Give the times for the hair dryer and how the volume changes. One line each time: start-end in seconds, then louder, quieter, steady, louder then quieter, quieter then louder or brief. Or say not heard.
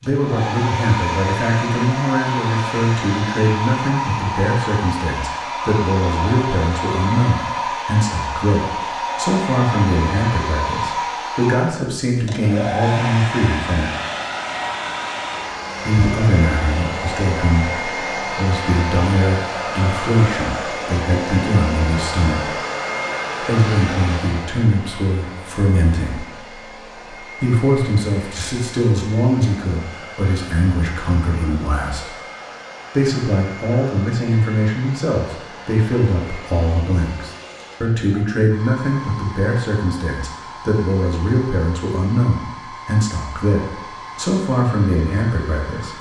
0.0-45.9 quieter.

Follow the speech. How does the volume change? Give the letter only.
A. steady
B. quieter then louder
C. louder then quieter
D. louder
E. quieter
A.